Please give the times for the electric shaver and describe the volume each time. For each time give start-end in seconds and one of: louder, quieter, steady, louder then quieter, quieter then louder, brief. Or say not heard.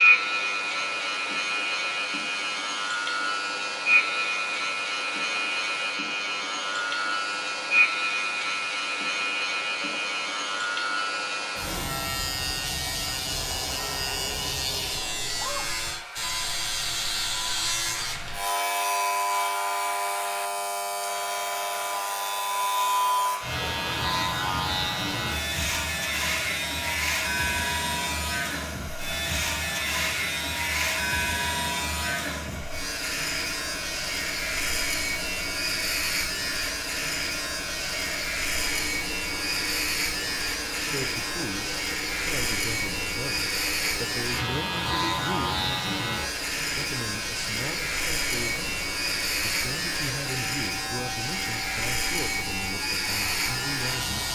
0.0-54.2 steady.